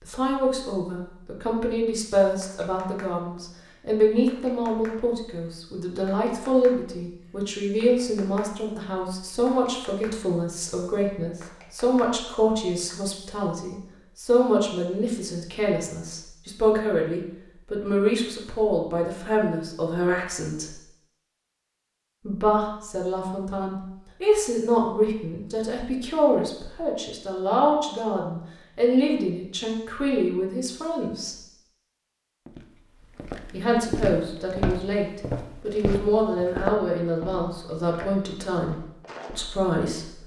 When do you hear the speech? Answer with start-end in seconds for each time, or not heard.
0.1-20.8, 22.2-31.4, 33.5-40.2.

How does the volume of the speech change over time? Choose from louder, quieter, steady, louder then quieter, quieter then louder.
steady.